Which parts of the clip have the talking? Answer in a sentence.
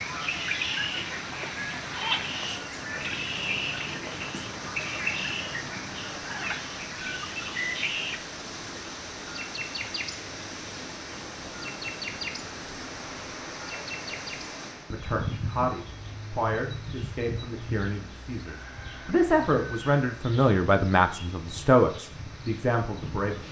The talking can be heard from 14.9 to 23.4 s.